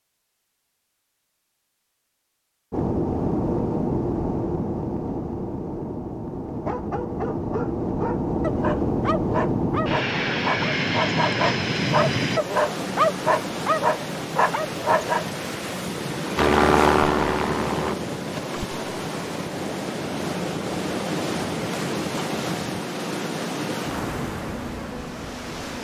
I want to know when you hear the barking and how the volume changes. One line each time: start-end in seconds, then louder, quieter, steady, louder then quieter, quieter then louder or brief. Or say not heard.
6.6-15.2 louder.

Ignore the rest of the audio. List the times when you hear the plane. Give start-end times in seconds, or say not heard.
2.7-12.4, 16.4-17.9.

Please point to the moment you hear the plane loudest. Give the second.
17 s.